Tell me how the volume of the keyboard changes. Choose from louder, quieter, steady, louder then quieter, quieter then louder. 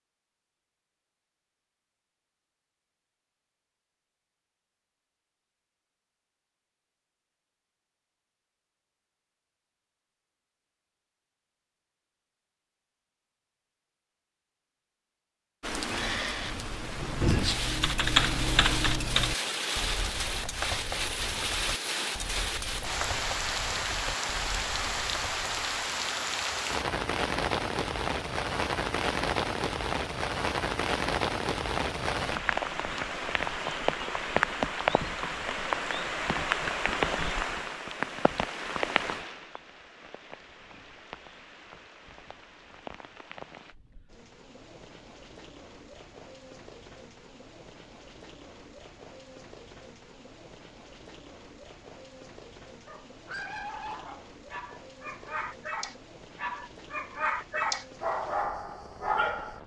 quieter.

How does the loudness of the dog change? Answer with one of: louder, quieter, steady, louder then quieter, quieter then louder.
louder.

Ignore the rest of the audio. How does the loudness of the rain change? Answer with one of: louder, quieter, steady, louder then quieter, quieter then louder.
quieter.